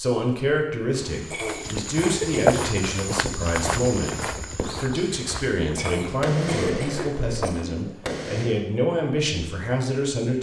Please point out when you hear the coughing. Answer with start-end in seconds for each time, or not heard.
1.3-2.6, 5.8-7.8.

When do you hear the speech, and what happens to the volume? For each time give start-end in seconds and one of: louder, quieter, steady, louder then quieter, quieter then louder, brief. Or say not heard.
0.0-10.3 steady.